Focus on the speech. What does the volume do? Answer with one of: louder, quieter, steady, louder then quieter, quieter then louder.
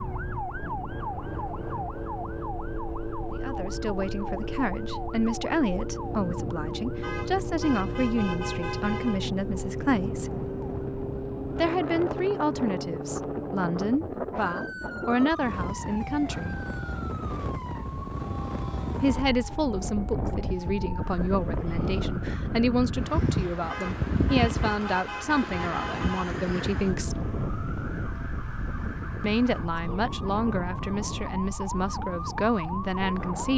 steady.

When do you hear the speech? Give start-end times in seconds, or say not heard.
3.4-10.3, 11.6-16.6, 19.0-27.2, 29.2-33.5.